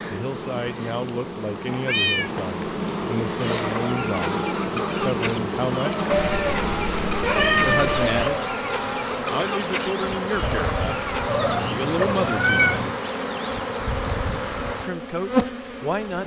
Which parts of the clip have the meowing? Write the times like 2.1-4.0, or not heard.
1.6-2.5, 6.1-8.4, 11.2-13.0.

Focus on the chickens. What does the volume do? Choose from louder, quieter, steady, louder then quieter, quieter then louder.
steady.